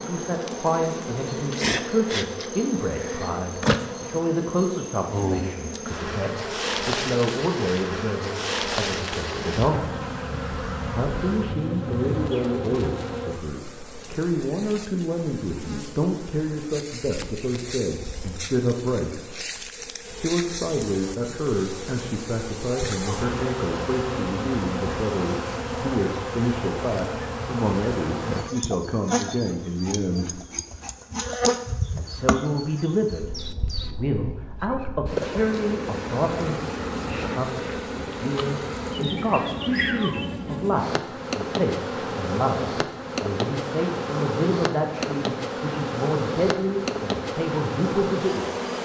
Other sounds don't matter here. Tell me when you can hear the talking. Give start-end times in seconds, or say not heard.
0.0-9.9, 10.9-19.2, 20.2-30.4, 31.9-48.6.